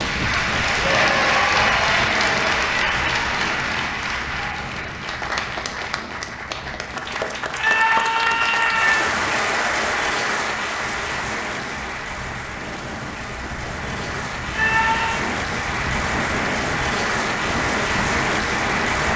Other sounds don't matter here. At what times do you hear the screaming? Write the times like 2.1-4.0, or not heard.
0.8-1.7, 7.5-9.0, 14.5-15.2.